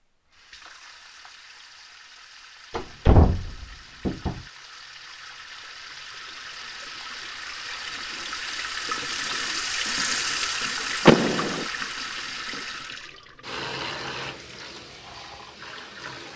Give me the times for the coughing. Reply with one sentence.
The coughing can't be heard in this clip.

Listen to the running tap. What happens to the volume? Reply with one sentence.
The loudness of the running tap goes up, then down.